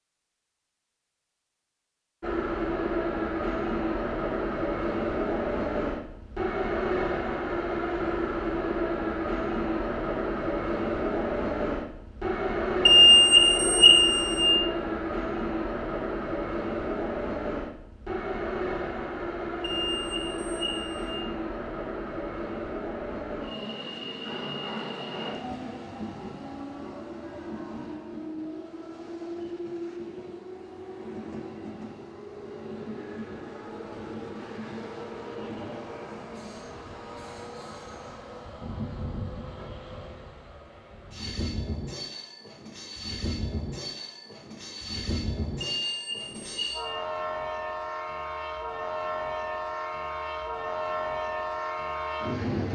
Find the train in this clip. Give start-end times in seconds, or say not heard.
2.2-52.7.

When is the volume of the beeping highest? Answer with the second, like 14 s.
13 s.